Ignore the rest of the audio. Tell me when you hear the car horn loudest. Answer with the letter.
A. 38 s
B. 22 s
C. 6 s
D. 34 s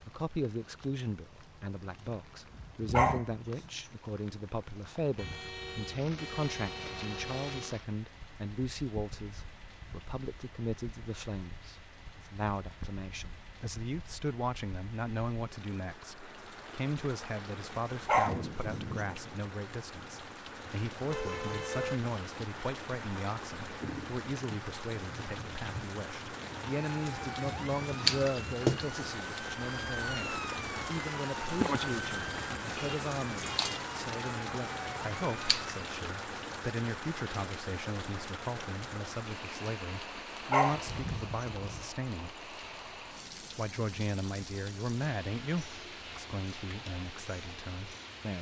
B.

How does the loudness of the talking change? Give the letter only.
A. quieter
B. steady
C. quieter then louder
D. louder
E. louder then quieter
B.